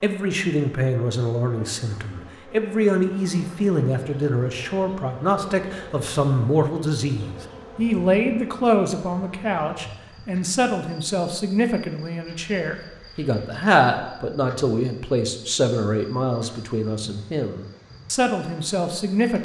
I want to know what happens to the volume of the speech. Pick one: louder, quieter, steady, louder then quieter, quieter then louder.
steady.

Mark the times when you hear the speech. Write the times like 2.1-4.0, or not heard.
0.0-19.4.